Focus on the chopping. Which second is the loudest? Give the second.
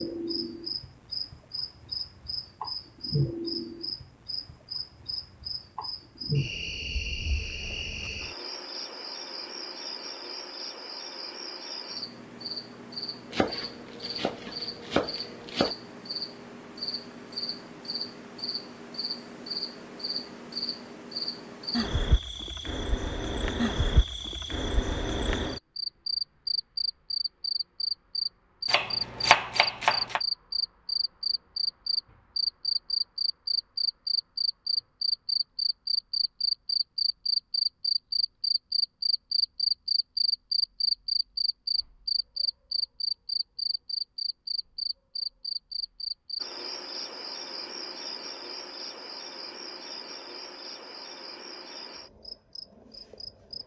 29 s.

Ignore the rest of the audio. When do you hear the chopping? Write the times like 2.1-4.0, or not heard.
13.3-15.8, 28.6-30.2.